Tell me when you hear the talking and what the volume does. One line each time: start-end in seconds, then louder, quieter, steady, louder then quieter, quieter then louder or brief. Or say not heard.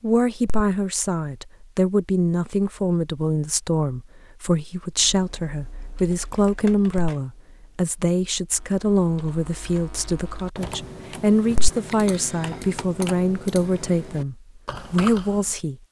0.0-15.8 steady.